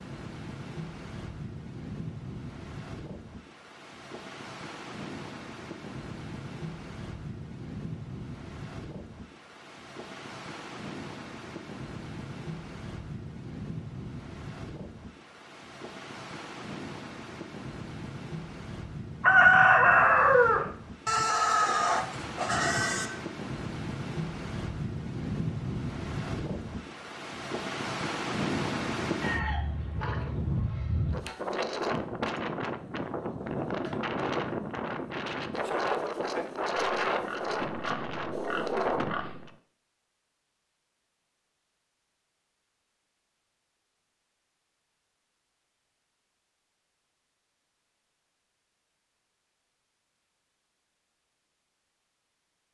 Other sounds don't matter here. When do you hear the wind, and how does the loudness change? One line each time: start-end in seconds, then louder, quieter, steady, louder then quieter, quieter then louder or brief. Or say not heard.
0.0-39.5 louder.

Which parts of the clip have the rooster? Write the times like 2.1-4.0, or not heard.
19.2-20.6, 29.2-31.2.